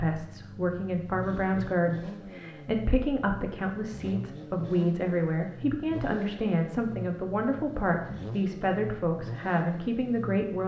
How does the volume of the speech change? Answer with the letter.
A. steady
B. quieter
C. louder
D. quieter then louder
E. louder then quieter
A.